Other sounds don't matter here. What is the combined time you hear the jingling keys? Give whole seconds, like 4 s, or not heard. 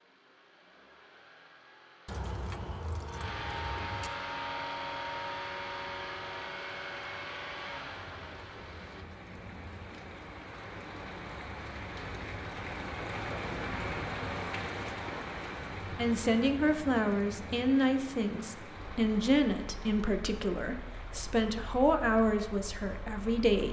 2 s.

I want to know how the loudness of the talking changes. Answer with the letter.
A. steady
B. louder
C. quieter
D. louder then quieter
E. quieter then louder
A.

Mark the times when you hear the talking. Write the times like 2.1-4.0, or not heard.
15.9-23.6.